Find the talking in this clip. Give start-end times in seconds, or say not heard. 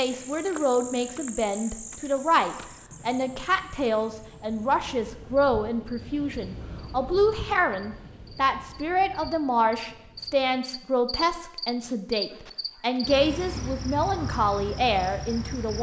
0.0-15.7.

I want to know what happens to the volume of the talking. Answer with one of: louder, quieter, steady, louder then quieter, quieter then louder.
steady.